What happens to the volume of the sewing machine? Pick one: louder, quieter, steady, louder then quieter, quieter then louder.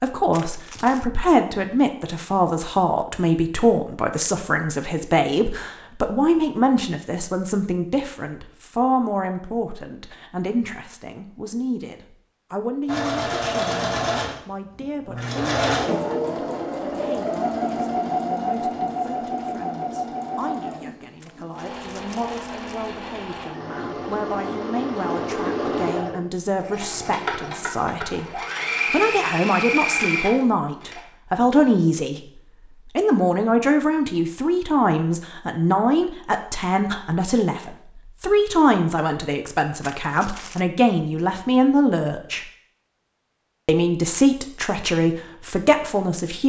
quieter then louder.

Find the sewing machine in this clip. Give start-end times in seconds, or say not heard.
12.8-31.0.